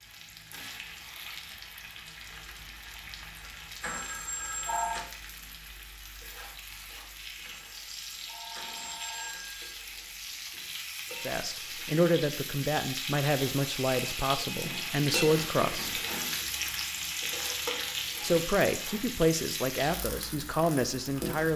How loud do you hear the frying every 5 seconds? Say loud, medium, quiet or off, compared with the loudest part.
medium, medium, loud, loud, medium.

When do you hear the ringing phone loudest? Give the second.
5 s.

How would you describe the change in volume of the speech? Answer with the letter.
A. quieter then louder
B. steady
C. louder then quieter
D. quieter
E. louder
B.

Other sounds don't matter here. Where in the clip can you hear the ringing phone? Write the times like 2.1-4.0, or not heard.
3.8-5.0, 7.4-9.8, 14.4-16.4.